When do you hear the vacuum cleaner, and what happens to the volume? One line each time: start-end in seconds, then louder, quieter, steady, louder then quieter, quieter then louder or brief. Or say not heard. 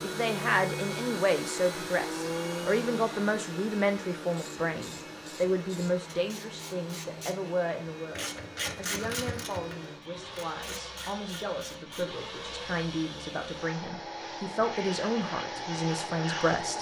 0.0-16.7 quieter then louder.